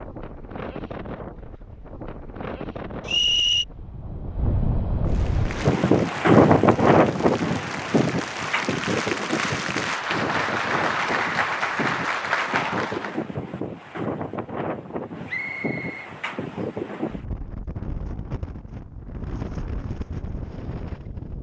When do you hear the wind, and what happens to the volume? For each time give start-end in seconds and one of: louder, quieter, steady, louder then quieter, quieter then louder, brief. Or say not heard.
0.0-21.3 louder then quieter.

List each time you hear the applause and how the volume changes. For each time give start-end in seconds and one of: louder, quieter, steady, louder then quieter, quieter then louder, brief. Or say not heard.
5.0-13.2 louder.